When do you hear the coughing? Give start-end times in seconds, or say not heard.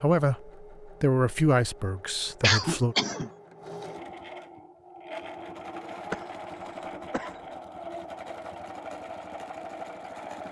2.4-3.3, 6.1-7.4.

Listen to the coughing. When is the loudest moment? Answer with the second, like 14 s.
3 s.